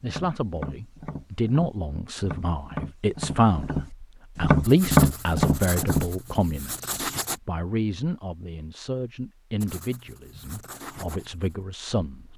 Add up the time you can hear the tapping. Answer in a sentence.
You can hear the tapping for 6 seconds altogether.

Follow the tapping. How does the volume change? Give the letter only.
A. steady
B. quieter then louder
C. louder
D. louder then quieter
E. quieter
C.